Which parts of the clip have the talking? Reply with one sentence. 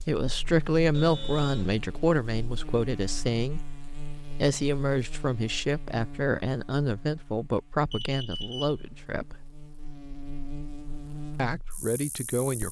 The talking can be heard from 0.1 to 9.4 s and from 11.3 to 12.6 s.